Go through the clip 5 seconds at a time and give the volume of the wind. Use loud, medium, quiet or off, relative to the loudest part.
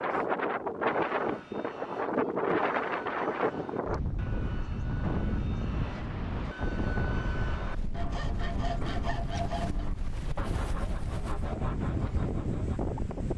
loud, medium, medium.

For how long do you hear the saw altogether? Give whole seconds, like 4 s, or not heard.
12 s.